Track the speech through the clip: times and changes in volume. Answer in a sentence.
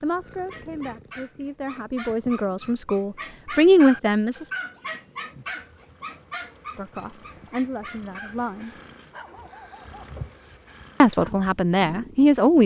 The speech can be heard from 0.0 to 4.5 s, getting louder; briefly from 6.8 to 8.7 s; and briefly from 11.0 to 12.6 s.